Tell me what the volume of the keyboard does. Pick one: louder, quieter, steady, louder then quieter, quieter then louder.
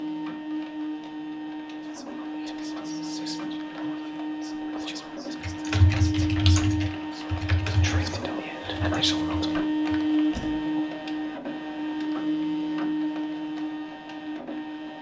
quieter.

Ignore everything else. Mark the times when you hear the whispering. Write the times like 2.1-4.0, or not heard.
1.8-9.7.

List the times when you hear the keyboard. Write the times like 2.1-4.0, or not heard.
5.4-10.6.